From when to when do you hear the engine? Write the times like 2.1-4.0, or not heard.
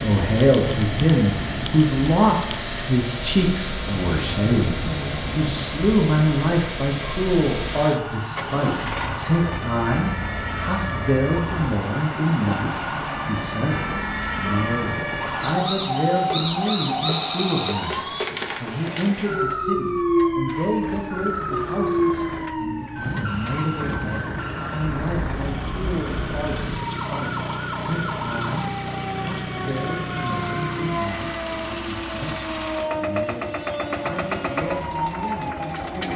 0.0-36.1.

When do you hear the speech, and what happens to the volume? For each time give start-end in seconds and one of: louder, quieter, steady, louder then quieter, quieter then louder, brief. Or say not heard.
0.0-36.1 quieter.